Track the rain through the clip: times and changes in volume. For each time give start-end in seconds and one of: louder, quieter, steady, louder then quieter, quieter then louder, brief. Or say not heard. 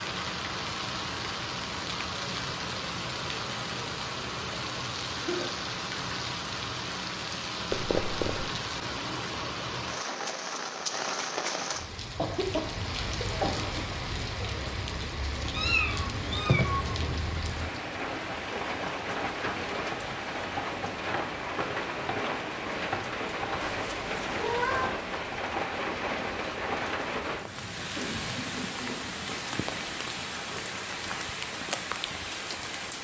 0.0-33.0 steady.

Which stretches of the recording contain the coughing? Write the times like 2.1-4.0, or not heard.
5.2-5.6, 12.2-13.9, 27.9-29.1.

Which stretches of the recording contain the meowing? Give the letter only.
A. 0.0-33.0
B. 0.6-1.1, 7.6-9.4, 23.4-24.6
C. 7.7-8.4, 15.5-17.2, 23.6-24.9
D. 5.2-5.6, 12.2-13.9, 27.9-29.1
C.